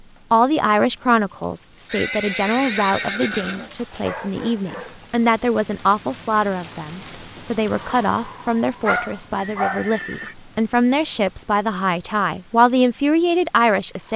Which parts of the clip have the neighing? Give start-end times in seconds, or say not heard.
1.9-3.8, 9.3-10.3.